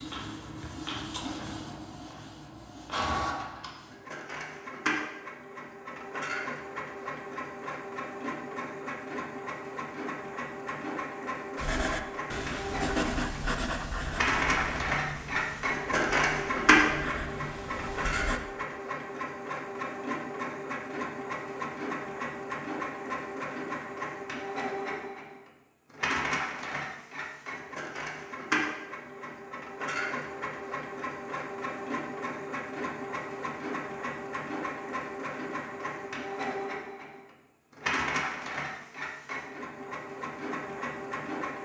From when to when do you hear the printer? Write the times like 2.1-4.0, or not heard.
0.0-41.5.